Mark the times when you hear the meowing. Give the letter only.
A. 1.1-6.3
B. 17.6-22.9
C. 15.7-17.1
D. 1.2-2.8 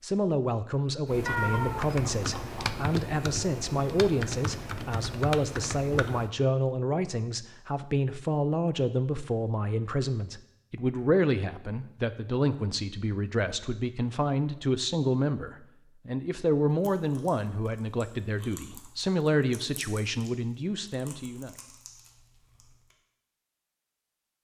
D.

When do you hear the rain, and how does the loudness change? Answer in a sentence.
You can't hear the rain here.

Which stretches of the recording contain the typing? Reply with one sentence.
You can hear the typing from 1.1 to 6.3 s.